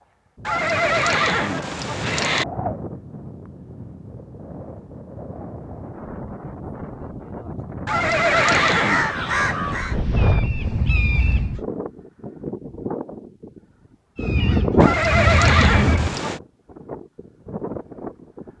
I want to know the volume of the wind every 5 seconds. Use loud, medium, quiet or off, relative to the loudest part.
medium, medium, loud, medium.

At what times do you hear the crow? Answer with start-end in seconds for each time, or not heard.
8.2-11.7, 14.2-16.2.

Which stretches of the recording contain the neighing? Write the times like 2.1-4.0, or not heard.
0.5-2.5, 7.8-9.1, 14.8-16.4.